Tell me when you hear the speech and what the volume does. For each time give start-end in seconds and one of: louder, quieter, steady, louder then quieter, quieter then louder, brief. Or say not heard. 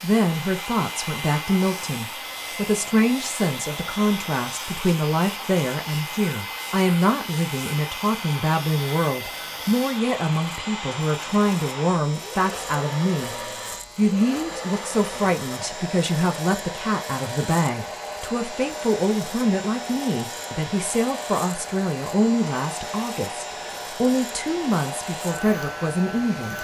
0.0-13.3 steady
13.9-26.5 steady.